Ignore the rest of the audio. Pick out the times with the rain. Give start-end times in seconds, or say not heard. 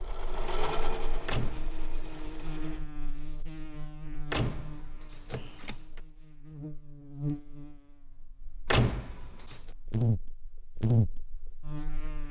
not heard.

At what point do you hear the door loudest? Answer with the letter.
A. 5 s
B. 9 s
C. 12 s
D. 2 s
B.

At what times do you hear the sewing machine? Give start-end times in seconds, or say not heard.
0.0-2.9.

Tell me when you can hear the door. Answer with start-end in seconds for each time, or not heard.
1.2-2.1, 4.3-6.0, 8.7-9.6.